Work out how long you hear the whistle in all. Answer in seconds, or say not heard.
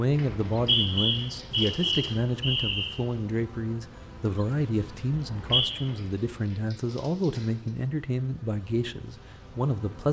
3 s.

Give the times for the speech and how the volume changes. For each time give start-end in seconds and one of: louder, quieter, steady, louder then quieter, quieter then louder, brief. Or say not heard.
0.0-10.0 steady.